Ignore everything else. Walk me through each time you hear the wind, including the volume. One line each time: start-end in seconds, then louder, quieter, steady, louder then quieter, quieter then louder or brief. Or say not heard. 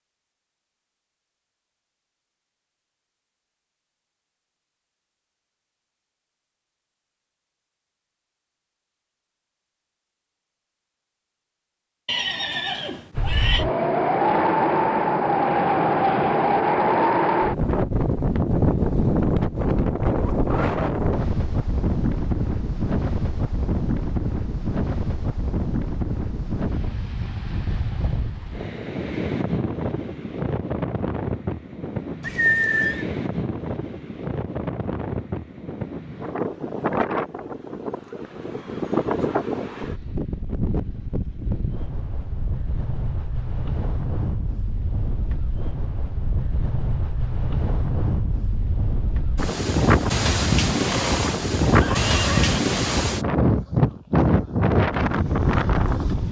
13.2-56.2 quieter then louder.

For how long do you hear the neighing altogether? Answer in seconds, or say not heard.
4 s.